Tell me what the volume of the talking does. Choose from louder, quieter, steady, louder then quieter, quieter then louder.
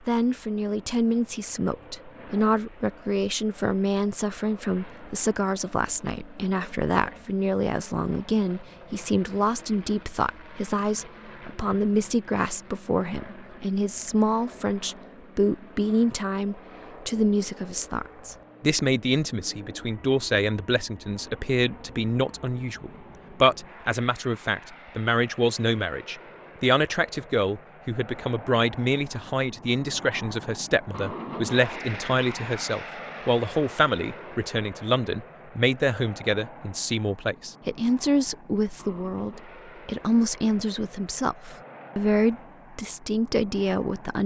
steady.